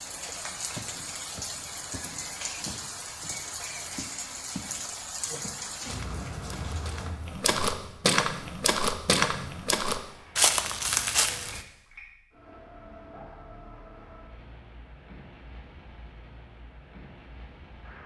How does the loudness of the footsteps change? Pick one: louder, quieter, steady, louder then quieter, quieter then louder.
louder.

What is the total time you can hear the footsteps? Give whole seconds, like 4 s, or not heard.
10 s.